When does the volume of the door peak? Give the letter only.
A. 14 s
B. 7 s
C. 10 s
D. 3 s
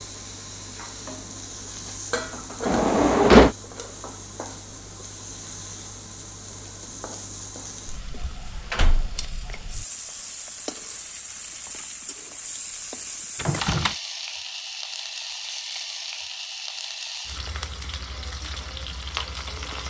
D.